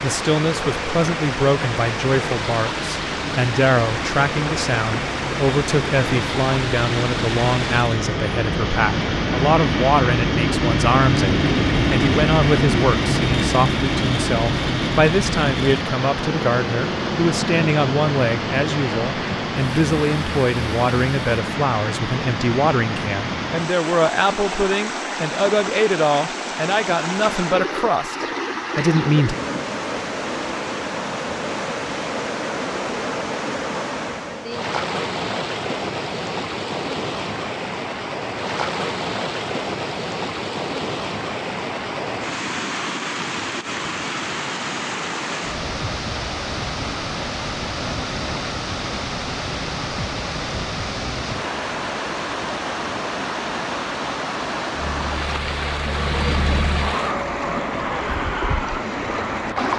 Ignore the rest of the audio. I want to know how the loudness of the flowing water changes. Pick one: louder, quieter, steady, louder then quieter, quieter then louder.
steady.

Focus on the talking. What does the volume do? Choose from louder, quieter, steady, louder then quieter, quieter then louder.
steady.